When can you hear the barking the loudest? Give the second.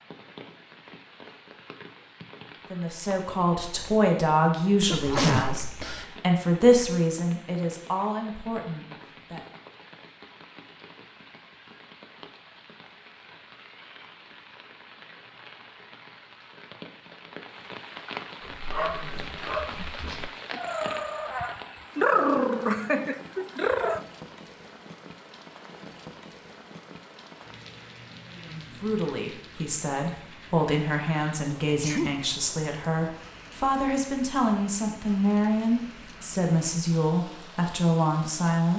22 s.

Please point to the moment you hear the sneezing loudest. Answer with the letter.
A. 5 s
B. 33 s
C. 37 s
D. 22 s
A.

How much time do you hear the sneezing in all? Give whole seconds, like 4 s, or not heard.
2 s.